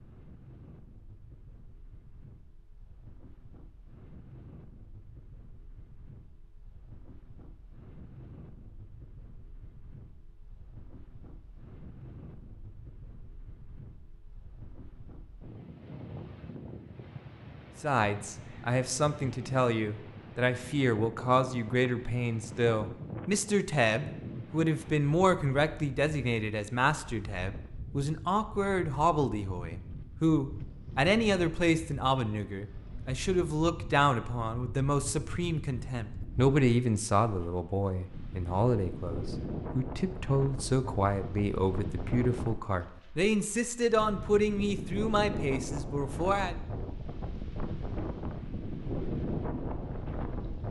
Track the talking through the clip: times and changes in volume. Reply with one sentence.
The talking can be heard from 17.8 to 46.5 s, at a steady volume.